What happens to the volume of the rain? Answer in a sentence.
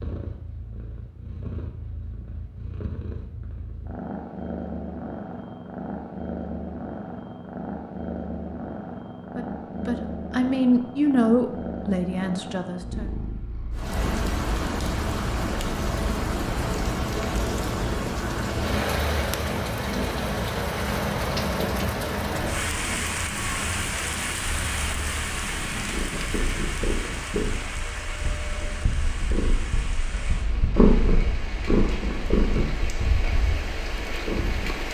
The volume of the rain goes down.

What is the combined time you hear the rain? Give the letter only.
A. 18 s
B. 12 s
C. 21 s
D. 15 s
C.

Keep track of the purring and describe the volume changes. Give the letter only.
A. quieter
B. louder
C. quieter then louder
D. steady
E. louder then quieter
B.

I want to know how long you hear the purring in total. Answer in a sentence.
The purring can be heard for 35 seconds in total.